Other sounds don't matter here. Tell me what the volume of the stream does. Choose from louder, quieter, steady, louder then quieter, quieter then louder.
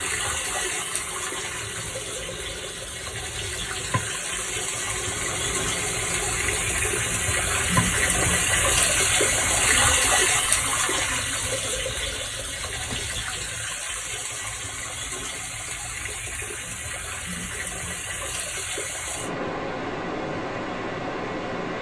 louder then quieter.